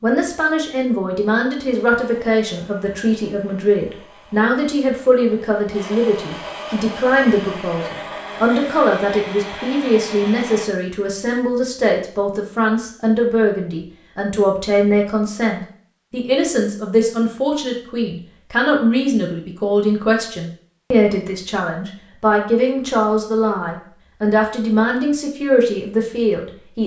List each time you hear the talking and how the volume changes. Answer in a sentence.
The talking can be heard from 0.0 to 26.8 s, at a steady volume.